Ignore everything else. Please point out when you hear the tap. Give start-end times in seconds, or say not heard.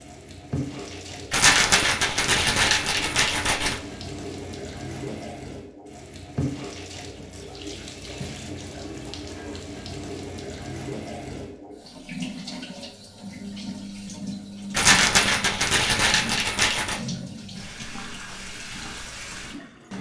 0.0-19.9.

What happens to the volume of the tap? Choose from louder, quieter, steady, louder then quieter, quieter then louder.
steady.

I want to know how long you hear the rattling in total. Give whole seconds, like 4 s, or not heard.
5 s.